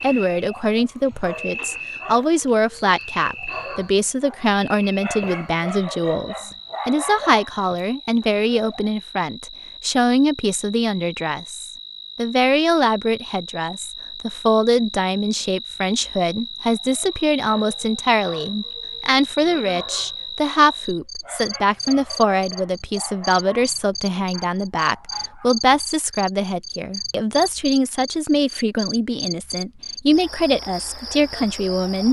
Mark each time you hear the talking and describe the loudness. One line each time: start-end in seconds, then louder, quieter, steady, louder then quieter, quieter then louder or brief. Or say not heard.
0.0-32.0 steady.